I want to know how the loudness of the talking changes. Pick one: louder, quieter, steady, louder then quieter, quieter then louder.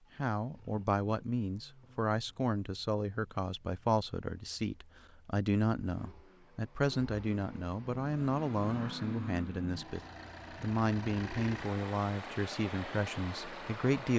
steady.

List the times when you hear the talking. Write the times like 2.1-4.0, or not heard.
0.1-14.1.